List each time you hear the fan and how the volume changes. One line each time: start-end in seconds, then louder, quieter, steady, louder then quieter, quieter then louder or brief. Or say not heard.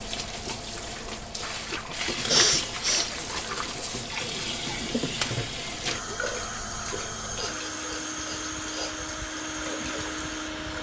0.0-10.7 louder.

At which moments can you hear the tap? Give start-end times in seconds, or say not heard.
0.0-10.7.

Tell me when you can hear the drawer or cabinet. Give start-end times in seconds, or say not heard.
not heard.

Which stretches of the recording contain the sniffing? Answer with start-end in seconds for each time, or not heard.
2.2-3.1, 7.3-8.9.